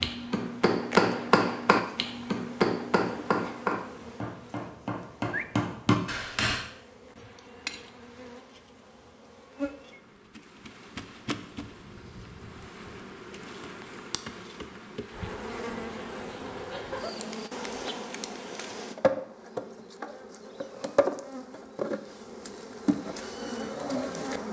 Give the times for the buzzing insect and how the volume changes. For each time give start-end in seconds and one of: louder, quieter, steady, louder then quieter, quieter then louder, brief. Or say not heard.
0.0-24.4 louder.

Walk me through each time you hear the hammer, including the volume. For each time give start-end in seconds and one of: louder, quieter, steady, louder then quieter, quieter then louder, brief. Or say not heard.
0.0-6.7 quieter then louder.